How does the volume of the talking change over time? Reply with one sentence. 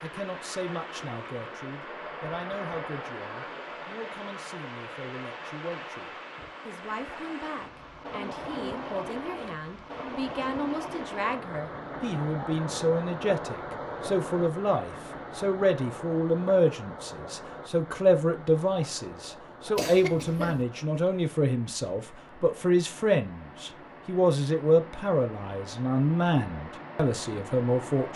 The volume of the talking goes up.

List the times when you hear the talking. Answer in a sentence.
You can hear the talking from 0.0 to 28.1 s.